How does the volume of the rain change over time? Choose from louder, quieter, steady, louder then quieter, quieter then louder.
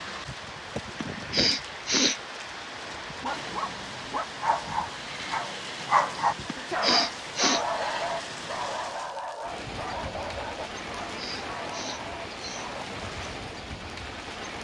steady.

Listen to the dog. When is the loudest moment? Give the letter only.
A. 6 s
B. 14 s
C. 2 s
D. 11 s
A.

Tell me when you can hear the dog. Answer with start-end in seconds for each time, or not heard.
3.0-12.8.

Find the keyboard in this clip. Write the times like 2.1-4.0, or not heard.
not heard.